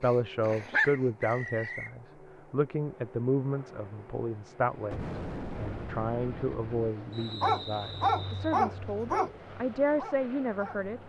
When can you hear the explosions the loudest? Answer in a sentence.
The volume of the explosions peaks at 5 seconds.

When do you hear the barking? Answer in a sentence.
You can hear the barking from 0.0 to 1.7 s and from 7.2 to 10.9 s.